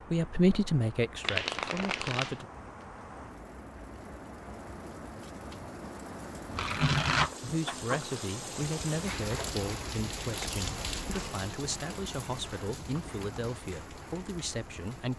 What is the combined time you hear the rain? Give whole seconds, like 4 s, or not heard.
15 s.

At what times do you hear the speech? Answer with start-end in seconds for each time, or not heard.
0.0-2.5, 7.4-15.1.